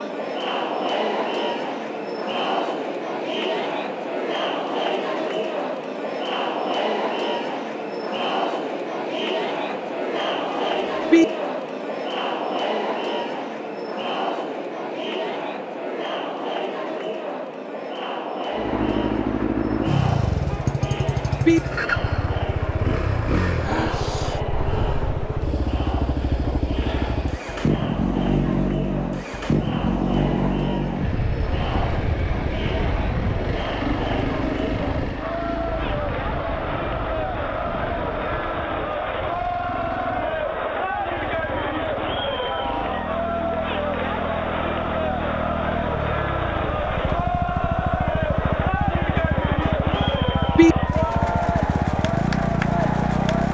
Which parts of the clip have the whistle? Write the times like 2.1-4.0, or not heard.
not heard.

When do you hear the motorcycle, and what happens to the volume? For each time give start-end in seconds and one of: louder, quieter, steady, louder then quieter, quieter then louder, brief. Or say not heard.
18.5-53.4 quieter then louder.